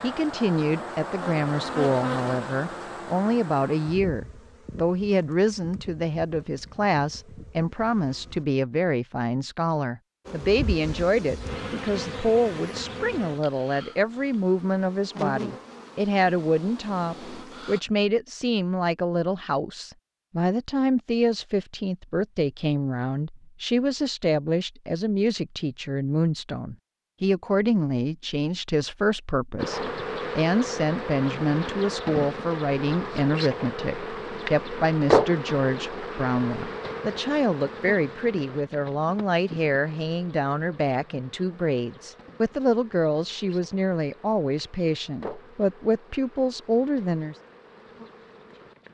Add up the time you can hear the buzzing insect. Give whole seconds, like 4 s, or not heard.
35 s.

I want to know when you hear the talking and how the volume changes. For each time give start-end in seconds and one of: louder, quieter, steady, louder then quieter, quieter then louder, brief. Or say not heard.
0.0-47.4 steady.